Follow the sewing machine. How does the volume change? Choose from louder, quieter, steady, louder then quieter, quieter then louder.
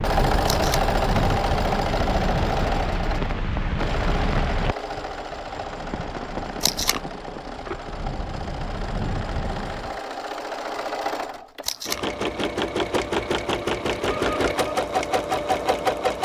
quieter then louder.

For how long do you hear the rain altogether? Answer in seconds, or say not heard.
10 s.